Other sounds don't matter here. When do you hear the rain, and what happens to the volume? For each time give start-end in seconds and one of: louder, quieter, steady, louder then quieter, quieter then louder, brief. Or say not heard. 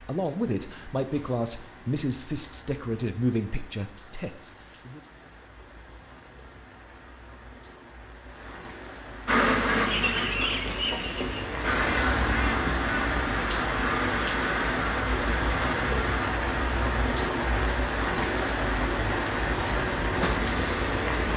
0.0-21.3 louder.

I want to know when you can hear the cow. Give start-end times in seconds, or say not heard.
not heard.